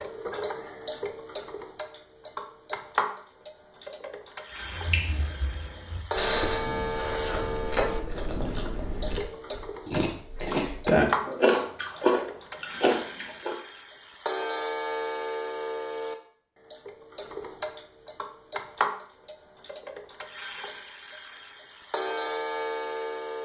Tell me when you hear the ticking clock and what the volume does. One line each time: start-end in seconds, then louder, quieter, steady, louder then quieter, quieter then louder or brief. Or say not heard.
0.0-23.4 steady.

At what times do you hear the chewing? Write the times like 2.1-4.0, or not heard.
4.6-13.6.